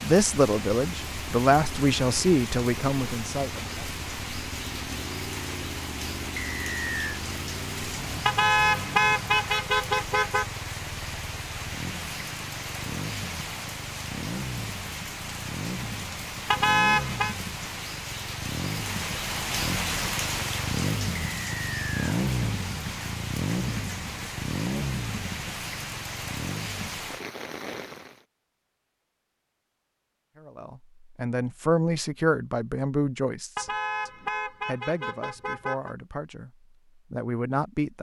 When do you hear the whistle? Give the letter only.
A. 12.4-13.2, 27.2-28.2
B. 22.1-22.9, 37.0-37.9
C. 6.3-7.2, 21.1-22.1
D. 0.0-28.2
C.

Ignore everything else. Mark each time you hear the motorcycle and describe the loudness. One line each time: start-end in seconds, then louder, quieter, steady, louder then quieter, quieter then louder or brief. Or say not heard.
0.1-27.0 louder.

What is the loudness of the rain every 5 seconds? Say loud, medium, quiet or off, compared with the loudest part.
loud, loud, loud, loud, loud, loud, off, off.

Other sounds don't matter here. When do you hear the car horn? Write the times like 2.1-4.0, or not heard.
8.2-10.4, 16.5-17.4, 33.5-36.0.